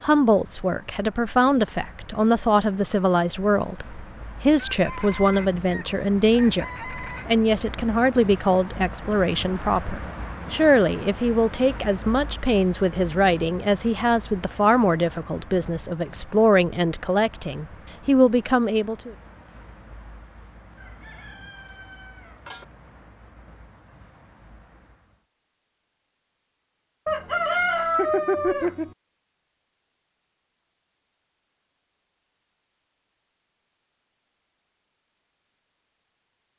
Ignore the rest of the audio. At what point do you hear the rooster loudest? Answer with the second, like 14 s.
28 s.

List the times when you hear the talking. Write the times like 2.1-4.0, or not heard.
0.0-19.1.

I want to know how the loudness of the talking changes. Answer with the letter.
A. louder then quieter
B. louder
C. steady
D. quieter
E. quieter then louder
C.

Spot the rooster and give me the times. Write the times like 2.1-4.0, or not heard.
4.7-7.3, 20.8-22.6, 27.1-28.9.